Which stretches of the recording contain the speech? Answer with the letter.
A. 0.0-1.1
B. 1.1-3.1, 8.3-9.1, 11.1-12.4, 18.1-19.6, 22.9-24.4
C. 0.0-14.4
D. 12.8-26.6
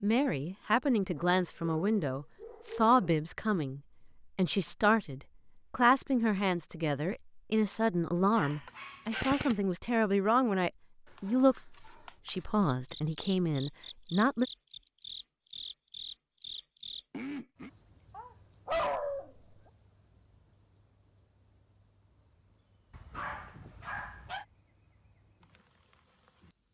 C.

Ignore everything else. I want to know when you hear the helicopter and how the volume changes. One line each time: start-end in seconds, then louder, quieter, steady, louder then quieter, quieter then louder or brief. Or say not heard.
not heard.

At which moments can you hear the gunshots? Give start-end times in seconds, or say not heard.
8.5-9.6.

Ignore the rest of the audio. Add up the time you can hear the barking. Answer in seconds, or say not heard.
7 s.